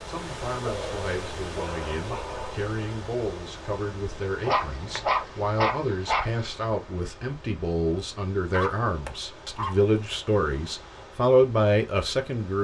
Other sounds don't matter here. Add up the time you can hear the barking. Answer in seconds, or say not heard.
5 s.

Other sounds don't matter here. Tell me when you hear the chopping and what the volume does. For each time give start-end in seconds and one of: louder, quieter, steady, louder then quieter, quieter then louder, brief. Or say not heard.
not heard.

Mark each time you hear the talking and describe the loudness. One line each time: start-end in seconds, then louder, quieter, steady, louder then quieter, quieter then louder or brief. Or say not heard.
0.1-12.5 louder.